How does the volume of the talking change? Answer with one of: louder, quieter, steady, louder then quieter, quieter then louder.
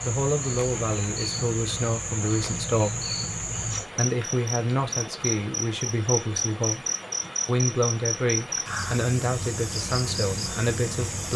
steady.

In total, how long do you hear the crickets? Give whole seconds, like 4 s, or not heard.
11 s.